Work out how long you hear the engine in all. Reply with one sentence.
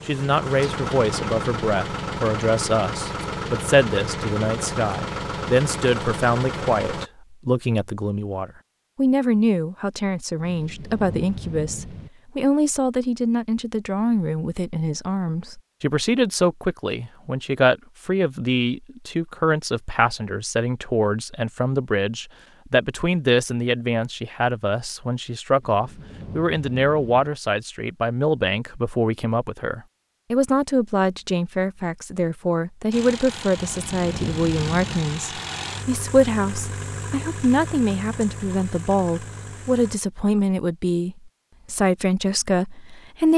The engine can be heard for 14 seconds in total.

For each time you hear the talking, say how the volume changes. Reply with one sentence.
The talking can be heard from 0.1 to 43.3 s, at a steady volume.